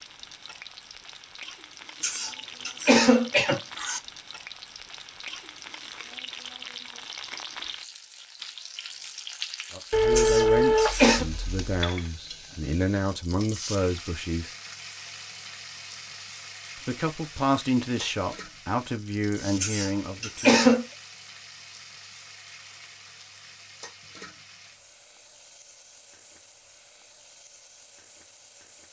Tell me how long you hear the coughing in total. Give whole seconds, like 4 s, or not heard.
4 s.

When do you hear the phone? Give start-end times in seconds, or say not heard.
9.9-11.7.